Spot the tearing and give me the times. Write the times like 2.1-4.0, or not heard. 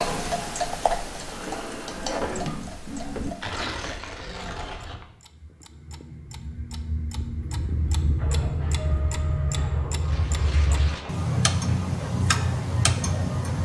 3.4-5.0, 10.0-11.2.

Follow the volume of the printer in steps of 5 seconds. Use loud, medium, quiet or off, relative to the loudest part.
loud, medium, medium.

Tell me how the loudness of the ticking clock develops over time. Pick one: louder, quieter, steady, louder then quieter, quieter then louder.
quieter then louder.